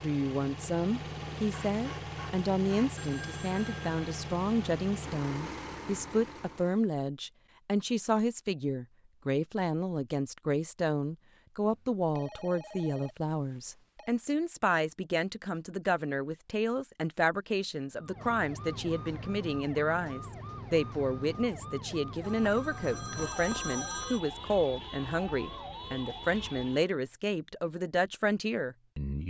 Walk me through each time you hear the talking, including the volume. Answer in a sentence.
You can hear the talking from 0.0 to 29.2 s, at a steady volume.